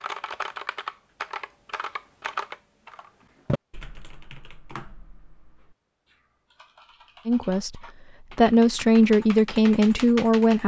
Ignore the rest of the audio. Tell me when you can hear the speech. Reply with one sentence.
The speech can be heard from 7.2 to 10.6 s.